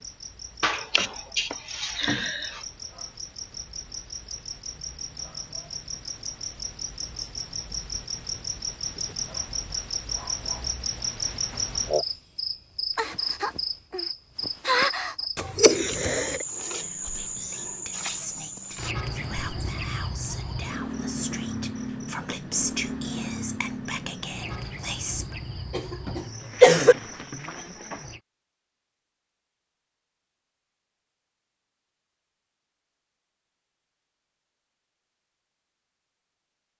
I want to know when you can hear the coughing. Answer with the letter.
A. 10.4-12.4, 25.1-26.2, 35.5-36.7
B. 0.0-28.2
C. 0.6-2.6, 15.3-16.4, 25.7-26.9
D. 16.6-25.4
C.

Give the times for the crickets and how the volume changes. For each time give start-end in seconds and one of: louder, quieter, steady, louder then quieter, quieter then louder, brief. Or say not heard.
0.0-28.2 louder then quieter.